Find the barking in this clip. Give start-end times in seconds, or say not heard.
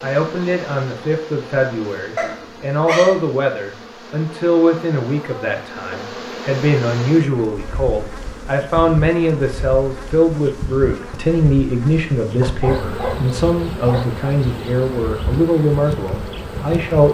2.1-3.2, 12.4-14.2.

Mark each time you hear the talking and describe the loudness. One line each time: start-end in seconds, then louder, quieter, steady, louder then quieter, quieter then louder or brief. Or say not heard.
0.0-17.0 steady.